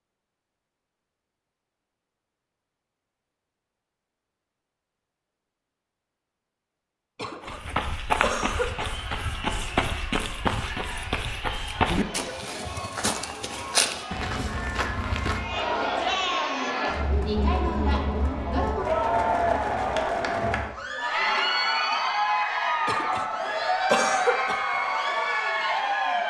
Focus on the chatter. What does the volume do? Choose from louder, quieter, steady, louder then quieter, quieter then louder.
louder.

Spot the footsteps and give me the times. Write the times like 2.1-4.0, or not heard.
7.4-16.4.